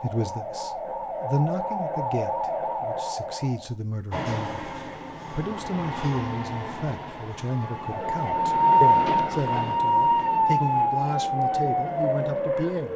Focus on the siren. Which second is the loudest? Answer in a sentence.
The loudest moment of the siren is at 9 seconds.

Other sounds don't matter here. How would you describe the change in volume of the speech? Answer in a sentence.
The loudness of the speech stays about the same.